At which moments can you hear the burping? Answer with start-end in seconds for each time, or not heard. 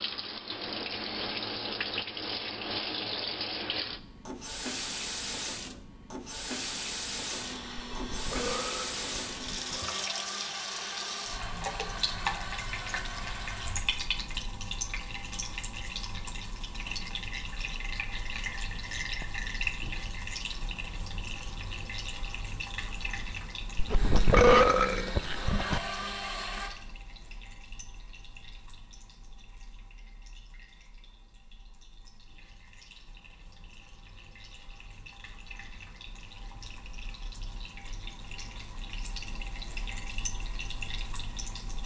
7.8-9.8, 23.8-25.8.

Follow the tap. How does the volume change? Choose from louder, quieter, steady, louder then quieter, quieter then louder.
quieter then louder.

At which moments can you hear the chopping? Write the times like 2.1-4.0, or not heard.
not heard.